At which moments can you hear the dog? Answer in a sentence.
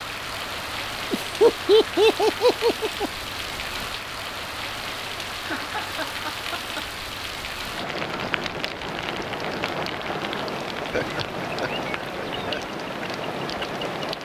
You can't hear the dog here.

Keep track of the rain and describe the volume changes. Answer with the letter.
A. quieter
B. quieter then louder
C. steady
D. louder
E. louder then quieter
C.